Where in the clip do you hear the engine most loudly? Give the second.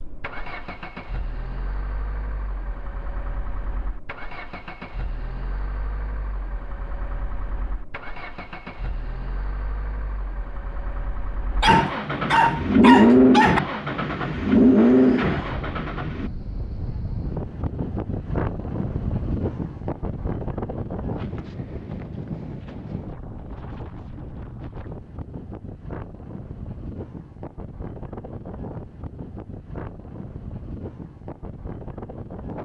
13 s.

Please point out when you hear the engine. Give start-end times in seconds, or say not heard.
0.0-16.3.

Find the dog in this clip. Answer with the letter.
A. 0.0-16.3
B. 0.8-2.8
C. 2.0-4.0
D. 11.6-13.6
D.